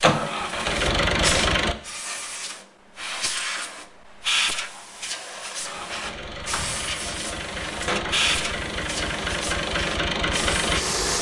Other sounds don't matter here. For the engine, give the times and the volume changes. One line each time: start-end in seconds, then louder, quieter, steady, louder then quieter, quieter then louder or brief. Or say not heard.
0.0-1.8 brief
5.6-11.1 louder.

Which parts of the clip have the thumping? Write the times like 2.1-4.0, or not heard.
6.5-6.9.